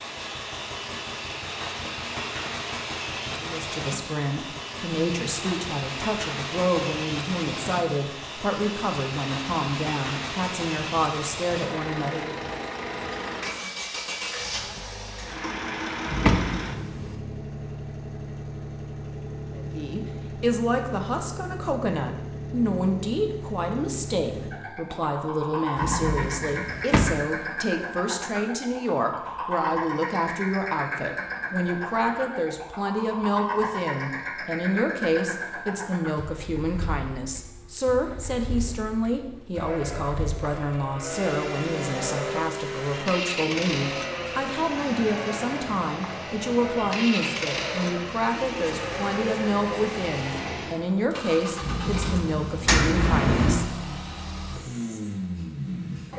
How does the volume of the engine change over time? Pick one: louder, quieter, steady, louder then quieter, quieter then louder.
steady.